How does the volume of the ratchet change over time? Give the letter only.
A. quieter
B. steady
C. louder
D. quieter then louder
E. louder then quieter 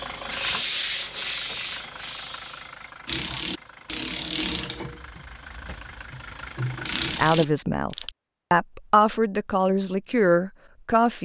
D.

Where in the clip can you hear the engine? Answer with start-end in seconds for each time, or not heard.
0.0-7.2.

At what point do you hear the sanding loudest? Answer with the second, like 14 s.
1 s.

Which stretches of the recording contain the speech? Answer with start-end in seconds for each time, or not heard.
7.1-11.1.